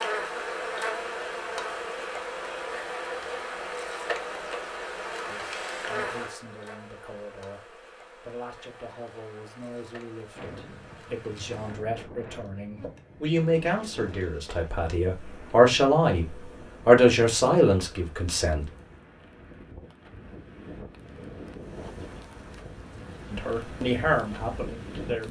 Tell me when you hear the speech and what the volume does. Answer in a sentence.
The speech can be heard from 5.2 to 18.6 s, getting louder; and briefly from 23.3 to 25.2 s.